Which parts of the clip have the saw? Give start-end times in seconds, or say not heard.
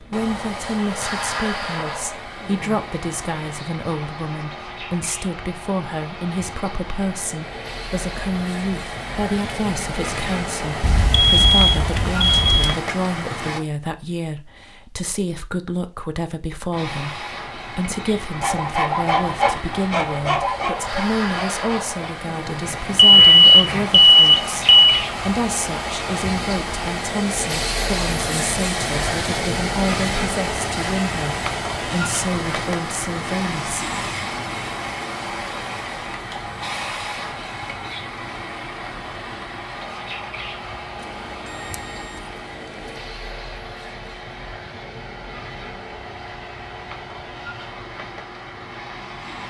18.3-23.9.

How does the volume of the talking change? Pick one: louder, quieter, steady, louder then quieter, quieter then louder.
steady.